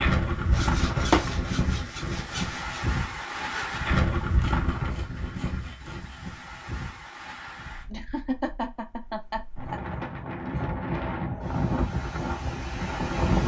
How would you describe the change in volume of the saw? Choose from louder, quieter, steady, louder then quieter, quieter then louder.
quieter.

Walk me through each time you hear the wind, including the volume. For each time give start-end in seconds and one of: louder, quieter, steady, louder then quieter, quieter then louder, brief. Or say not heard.
0.0-13.4 quieter then louder.